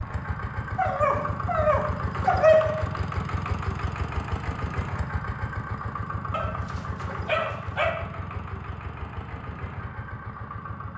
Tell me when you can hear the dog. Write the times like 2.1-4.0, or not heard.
0.8-2.9, 6.3-8.0.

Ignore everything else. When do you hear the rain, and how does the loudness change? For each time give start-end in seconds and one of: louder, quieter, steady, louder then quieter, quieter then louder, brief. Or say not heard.
not heard.